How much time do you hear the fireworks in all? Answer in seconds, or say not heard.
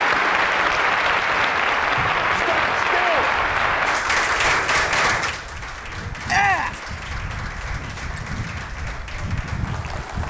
not heard.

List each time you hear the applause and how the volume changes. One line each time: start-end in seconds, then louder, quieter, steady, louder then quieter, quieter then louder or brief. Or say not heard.
0.0-10.2 quieter.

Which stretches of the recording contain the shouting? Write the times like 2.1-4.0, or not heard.
2.3-3.3, 6.2-6.8.